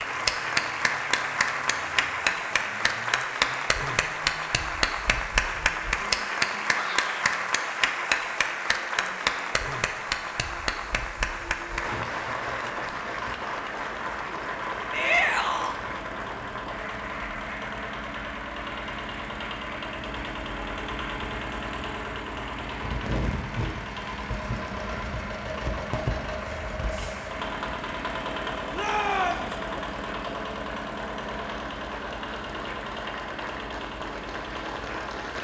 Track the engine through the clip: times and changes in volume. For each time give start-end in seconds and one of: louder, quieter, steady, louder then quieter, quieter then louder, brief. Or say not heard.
0.0-35.4 louder.